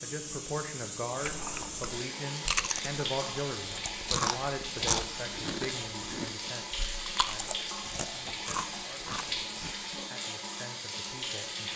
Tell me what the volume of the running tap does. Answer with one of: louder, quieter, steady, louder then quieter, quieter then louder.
steady.